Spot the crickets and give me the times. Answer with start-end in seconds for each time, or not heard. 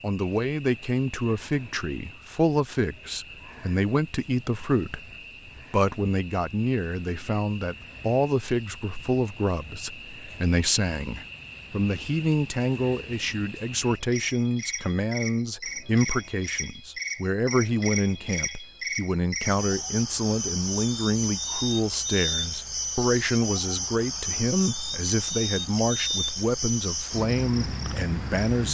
0.0-28.7.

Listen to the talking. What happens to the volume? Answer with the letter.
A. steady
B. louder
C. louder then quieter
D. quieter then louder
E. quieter
A.